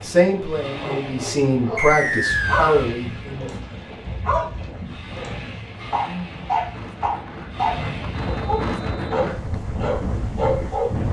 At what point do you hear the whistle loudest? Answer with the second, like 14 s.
2 s.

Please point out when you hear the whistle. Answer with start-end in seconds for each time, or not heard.
1.8-2.9, 8.2-9.2.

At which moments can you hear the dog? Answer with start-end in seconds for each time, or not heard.
0.8-10.9.